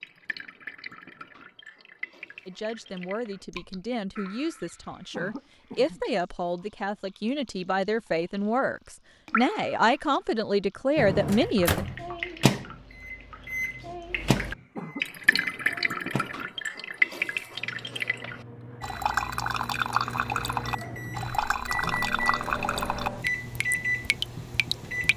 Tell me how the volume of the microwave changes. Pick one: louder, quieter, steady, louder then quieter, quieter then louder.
quieter then louder.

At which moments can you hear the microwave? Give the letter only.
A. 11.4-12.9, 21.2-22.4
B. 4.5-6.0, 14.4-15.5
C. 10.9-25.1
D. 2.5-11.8
C.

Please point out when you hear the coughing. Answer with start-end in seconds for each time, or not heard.
4.5-6.0, 14.4-15.5.